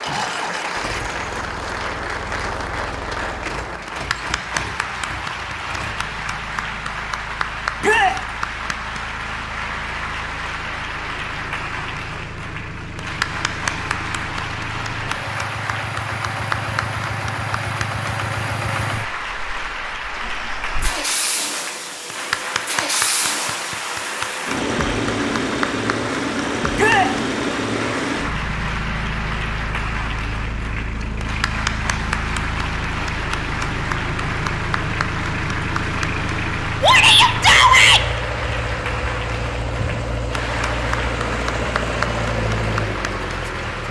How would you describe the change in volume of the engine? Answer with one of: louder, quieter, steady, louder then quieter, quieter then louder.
louder.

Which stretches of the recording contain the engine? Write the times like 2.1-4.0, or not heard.
0.0-43.8.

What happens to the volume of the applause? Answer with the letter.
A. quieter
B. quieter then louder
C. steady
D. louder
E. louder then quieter
C.